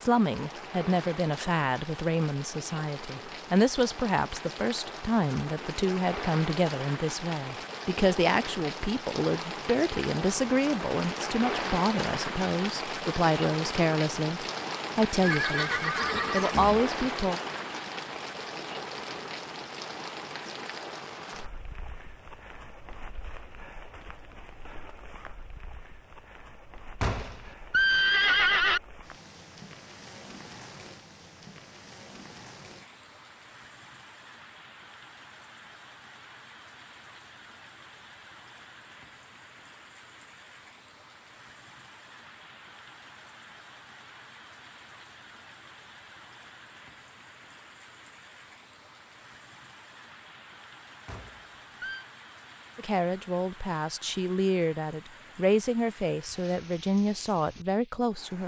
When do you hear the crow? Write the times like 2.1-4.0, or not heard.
not heard.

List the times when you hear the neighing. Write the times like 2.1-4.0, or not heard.
15.2-16.9, 27.0-28.8, 51.0-52.0.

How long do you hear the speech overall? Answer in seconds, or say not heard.
23 s.